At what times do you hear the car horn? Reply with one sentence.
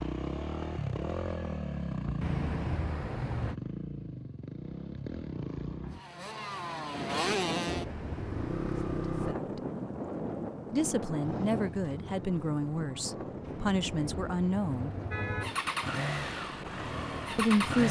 The car horn can be heard from 2.2 to 3.5 s, from 7.7 to 8.9 s and from 13.4 to 15.4 s.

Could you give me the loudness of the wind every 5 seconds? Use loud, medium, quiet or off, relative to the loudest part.
off, loud, loud, medium.